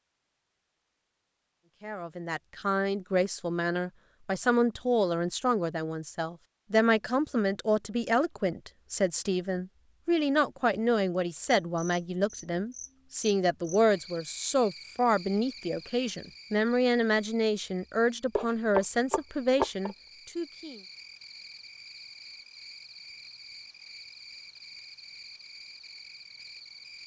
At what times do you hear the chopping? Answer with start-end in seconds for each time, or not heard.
18.4-19.9.